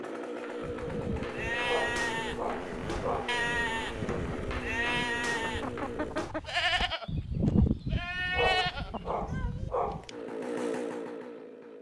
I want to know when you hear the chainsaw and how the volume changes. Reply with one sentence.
You can hear the chainsaw from 0.0 to 6.2 s, at a steady volume; and briefly from 10.1 to 11.7 s.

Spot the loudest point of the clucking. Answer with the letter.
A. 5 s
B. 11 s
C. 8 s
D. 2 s
C.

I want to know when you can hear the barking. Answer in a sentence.
The barking can be heard from 1.6 to 3.4 s and from 8.3 to 10.1 s.